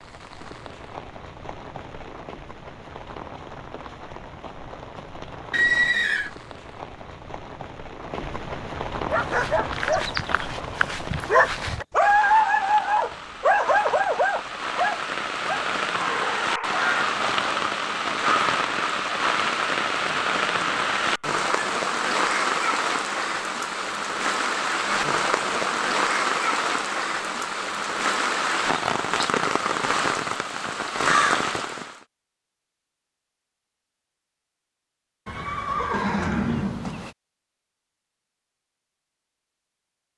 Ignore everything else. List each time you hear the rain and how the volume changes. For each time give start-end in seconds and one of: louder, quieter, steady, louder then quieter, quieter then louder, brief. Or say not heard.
0.0-32.0 louder.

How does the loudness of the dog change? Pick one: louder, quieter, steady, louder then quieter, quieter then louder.
louder then quieter.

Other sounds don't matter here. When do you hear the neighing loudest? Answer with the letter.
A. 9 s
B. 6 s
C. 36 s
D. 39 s
B.